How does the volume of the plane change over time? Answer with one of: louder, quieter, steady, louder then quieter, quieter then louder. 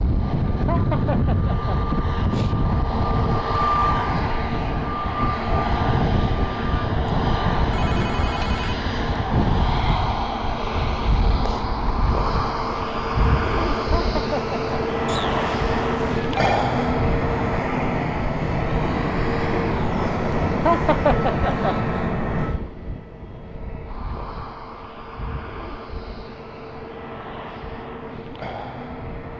quieter.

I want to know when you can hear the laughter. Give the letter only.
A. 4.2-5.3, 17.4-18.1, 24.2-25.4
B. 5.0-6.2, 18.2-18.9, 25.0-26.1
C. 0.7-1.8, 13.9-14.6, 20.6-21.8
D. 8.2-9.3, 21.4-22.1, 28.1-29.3
C.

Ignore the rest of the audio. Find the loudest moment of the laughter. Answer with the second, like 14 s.
21 s.